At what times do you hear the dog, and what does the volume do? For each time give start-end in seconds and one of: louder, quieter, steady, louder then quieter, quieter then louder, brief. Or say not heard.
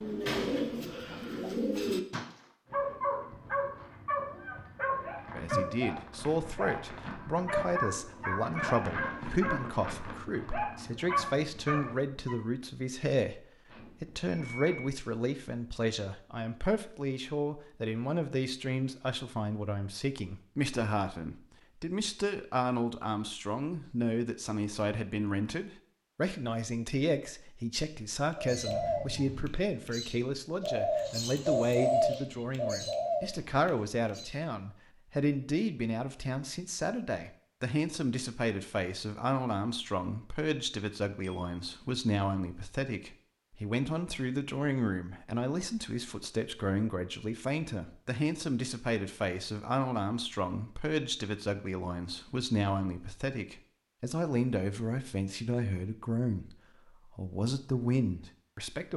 2.7-12.3 steady.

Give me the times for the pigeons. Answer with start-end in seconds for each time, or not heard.
0.0-2.4, 28.3-34.4.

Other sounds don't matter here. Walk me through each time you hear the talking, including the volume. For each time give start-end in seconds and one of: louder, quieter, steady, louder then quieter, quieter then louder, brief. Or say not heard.
5.3-56.5 steady
57.1-58.9 brief.